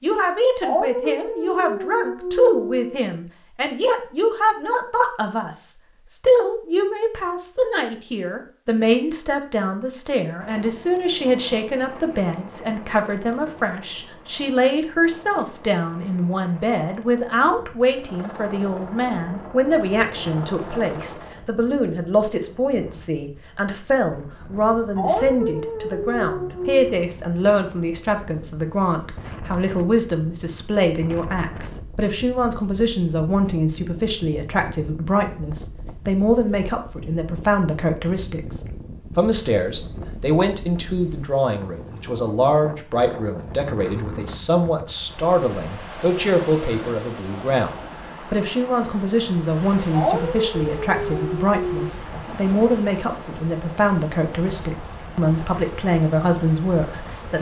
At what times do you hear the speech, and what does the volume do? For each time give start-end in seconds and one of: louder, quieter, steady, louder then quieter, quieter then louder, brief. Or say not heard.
0.0-57.3 steady.